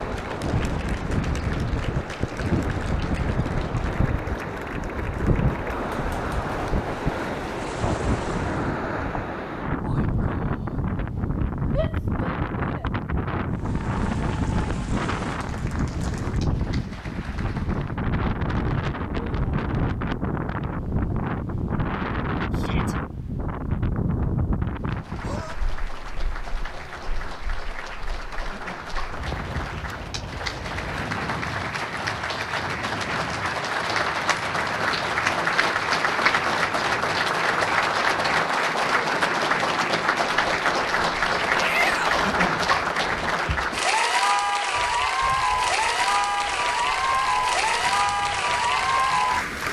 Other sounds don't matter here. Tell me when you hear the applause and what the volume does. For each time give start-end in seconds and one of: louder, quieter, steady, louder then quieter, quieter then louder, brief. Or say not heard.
0.0-8.8 steady
13.5-18.1 steady
24.8-49.6 louder.